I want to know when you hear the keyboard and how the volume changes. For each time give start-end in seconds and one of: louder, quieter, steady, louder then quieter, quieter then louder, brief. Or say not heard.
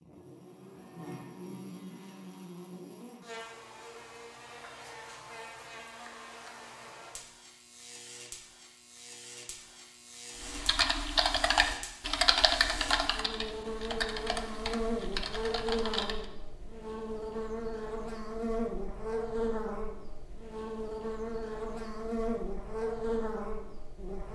10.4-16.2 quieter.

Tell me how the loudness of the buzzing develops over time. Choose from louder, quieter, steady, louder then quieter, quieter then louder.
louder.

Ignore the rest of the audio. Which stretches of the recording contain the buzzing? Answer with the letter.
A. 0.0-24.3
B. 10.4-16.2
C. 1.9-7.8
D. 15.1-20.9
A.